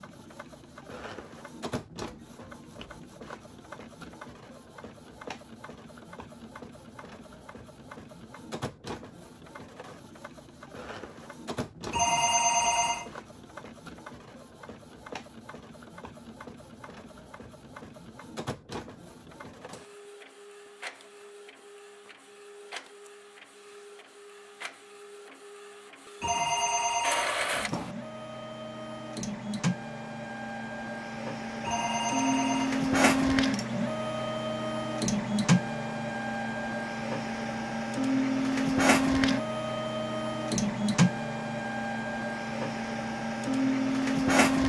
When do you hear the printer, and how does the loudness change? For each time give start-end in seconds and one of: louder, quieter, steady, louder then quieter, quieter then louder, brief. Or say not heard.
0.0-44.6 louder.